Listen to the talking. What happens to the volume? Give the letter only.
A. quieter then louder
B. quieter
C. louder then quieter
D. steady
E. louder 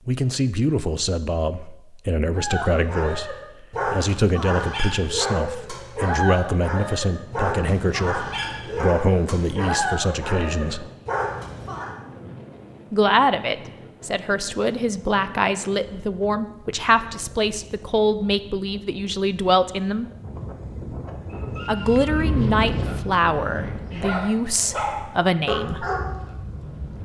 D.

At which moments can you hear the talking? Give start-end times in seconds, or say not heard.
0.1-10.9, 12.9-20.1, 21.6-25.9.